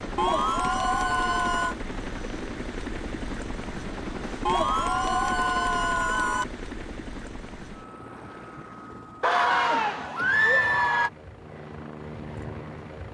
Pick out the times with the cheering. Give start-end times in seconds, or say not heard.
0.1-1.8, 4.5-6.5, 9.2-11.1.